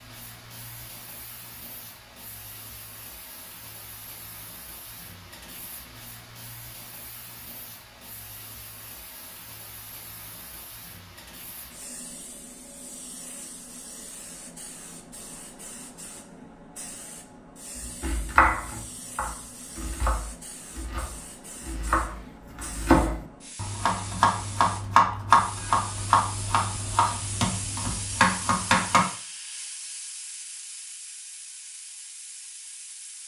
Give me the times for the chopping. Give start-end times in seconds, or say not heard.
18.0-29.1.